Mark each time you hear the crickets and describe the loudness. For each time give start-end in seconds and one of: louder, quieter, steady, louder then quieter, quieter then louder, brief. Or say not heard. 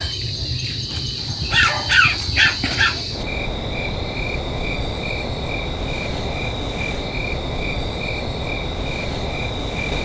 0.0-9.9 steady.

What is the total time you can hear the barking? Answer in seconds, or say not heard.
2 s.